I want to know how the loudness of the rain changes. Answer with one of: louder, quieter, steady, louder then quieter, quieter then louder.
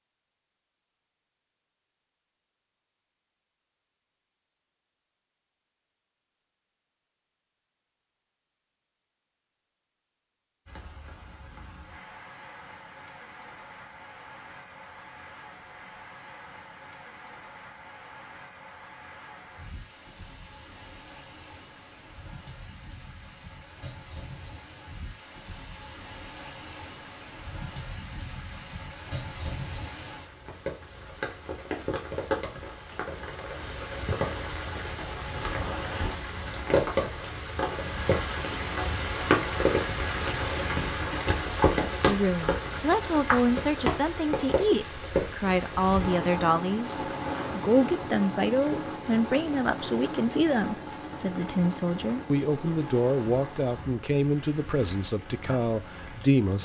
louder then quieter.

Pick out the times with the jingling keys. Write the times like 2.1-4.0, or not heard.
not heard.